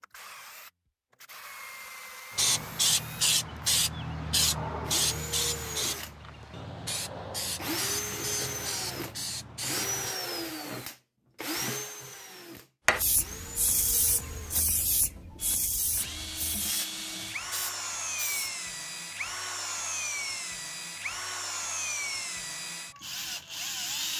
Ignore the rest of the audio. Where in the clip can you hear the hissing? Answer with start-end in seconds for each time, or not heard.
2.4-10.2, 12.8-18.5.